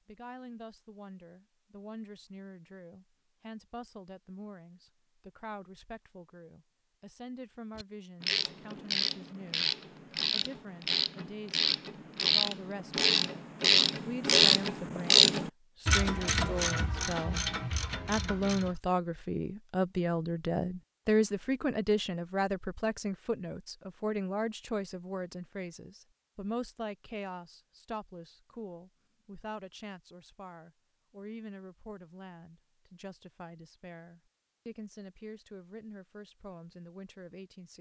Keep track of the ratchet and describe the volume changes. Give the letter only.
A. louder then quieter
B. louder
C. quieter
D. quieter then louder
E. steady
A.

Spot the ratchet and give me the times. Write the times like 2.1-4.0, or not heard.
7.8-18.8.